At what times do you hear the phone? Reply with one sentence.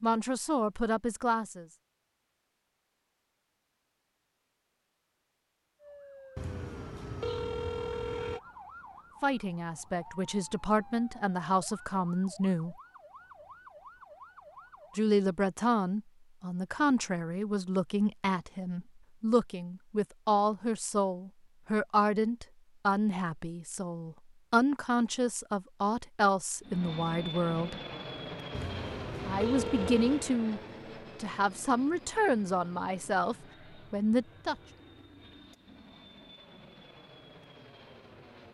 You can hear the phone from 6.3 to 8.4 s and from 28.5 to 30.3 s.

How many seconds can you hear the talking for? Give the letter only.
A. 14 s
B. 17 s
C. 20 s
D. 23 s
D.